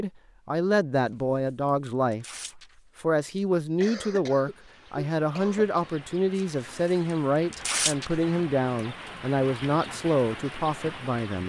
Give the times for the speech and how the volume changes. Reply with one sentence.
The speech can be heard from 0.0 to 11.4 s, at a steady volume.